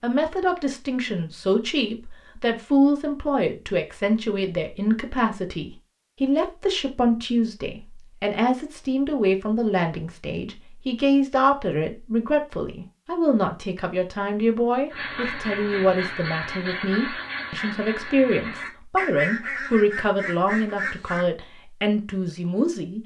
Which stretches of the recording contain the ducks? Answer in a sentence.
The ducks can be heard from 14.9 to 21.2 s.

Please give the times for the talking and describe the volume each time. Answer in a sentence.
You can hear the talking from 0.0 to 23.0 s, at a steady volume.